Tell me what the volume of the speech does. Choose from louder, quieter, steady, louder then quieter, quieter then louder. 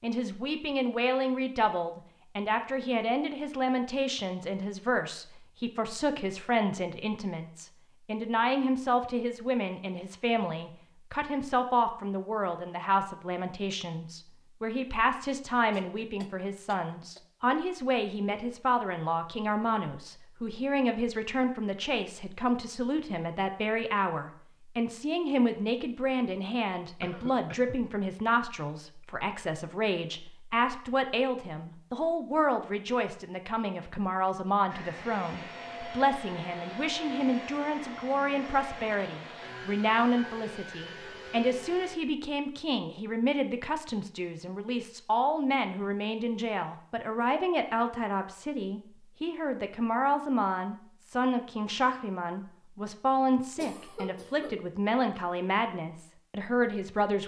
steady.